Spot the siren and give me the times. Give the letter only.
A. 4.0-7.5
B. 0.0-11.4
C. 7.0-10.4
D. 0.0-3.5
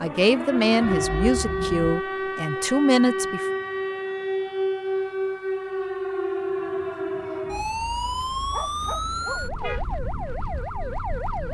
B.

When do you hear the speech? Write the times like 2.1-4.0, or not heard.
0.0-3.5.